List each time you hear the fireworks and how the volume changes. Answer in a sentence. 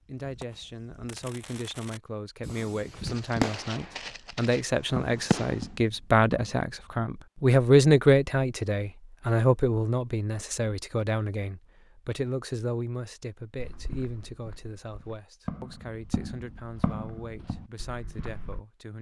The fireworks can be heard from 0.2 to 5.7 s, getting louder then quieter.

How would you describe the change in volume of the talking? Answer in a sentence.
The volume of the talking goes up, then down.